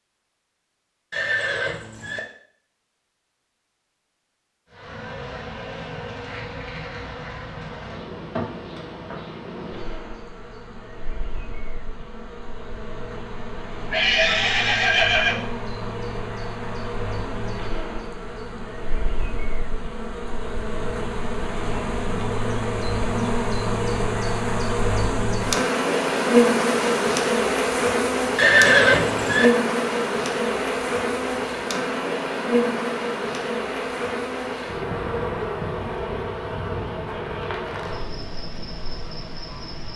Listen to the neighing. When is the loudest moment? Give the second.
29 s.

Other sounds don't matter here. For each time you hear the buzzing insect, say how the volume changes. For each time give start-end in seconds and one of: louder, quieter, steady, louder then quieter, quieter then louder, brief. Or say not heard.
4.7-39.9 louder then quieter.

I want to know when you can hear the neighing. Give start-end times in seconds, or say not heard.
1.1-2.2, 13.9-15.4, 28.4-29.5.